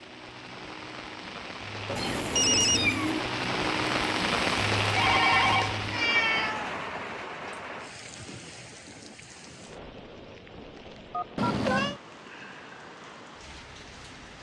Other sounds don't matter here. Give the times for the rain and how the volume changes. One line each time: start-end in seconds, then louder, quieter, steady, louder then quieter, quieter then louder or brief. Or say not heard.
0.0-14.3 louder then quieter.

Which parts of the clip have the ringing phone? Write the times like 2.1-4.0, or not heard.
1.9-2.9, 5.0-5.8, 11.1-11.8.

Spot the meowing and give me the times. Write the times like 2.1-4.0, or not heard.
1.9-3.2, 5.0-6.8, 11.3-12.0.